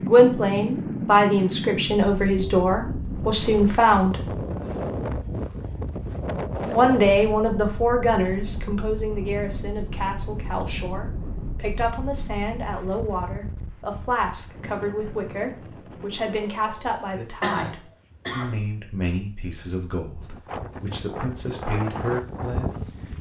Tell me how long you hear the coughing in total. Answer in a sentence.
You can hear the coughing for 2 seconds altogether.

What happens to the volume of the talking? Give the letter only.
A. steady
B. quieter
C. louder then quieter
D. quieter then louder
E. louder
B.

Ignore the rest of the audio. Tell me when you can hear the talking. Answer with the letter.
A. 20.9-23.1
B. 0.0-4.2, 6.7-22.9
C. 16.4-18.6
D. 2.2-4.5
B.